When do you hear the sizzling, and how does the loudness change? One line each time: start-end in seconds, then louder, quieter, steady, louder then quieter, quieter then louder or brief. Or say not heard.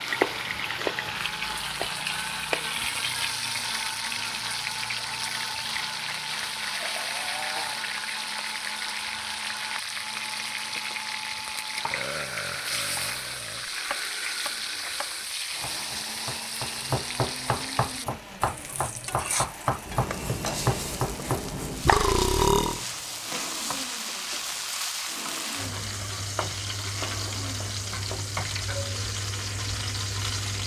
0.0-30.6 steady.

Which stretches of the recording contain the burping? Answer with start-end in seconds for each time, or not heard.
6.7-7.9, 11.9-13.7, 21.9-22.8.